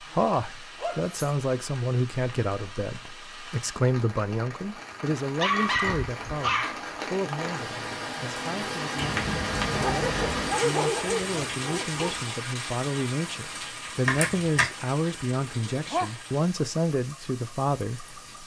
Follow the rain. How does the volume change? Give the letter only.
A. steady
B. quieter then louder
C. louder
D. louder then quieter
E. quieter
D.